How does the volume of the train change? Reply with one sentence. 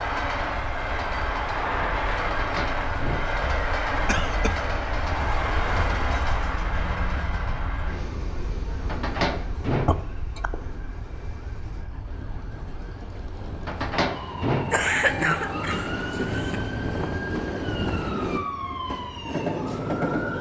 The loudness of the train goes down, then up.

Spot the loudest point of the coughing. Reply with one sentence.
The volume of the coughing peaks at 15 seconds.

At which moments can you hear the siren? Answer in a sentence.
You can hear the siren from 0.0 to 20.3 s.